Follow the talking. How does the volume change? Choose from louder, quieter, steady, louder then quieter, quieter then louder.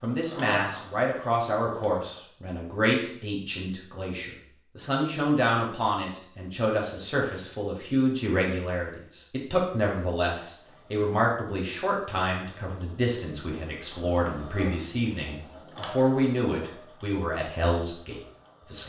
steady.